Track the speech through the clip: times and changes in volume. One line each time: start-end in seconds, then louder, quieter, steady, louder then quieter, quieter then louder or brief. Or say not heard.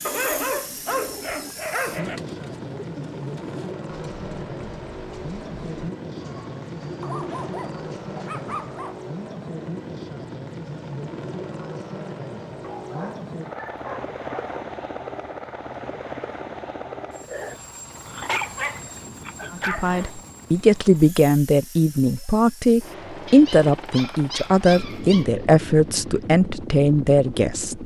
19.5-27.8 steady.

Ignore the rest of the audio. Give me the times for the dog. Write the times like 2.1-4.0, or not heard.
0.1-2.2, 7.0-9.0, 12.6-14.7, 17.2-20.1, 23.2-25.3.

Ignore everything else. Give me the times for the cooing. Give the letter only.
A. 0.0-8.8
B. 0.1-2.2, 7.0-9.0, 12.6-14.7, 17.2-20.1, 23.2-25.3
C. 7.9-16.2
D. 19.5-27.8
A.